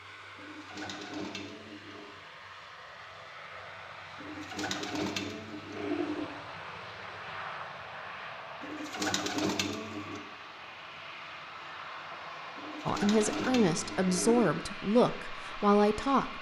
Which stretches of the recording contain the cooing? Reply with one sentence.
You can hear the cooing from 0.3 to 2.1 s, from 4.2 to 6.2 s, from 8.6 to 10.2 s and from 12.6 to 14.6 s.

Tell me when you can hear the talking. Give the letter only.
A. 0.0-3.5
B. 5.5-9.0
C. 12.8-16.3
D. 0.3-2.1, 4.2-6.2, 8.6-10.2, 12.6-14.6
C.